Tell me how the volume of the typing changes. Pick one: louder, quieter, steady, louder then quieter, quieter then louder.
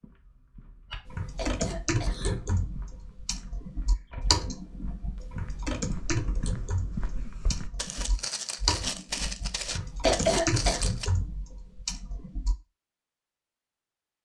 steady.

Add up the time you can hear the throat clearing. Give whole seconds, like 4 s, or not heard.
2 s.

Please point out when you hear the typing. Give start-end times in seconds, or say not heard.
1.1-12.6.